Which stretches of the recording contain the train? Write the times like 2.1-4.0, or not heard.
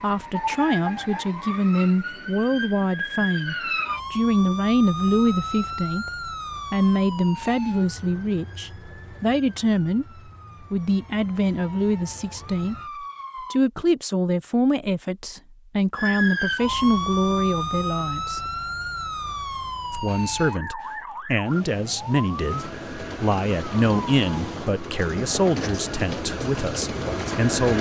22.3-27.7.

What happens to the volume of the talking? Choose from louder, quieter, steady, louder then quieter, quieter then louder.
steady.